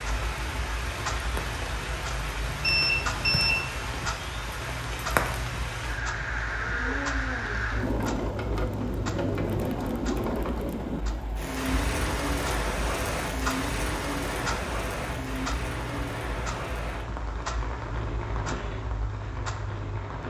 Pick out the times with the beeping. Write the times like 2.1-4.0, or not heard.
2.6-3.7.